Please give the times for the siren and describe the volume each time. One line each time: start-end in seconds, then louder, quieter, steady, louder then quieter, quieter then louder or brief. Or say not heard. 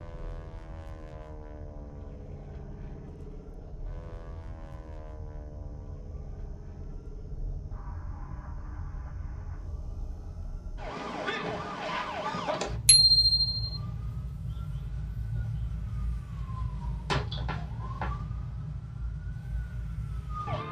0.0-20.6 louder.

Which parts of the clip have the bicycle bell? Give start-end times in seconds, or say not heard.
12.8-13.8.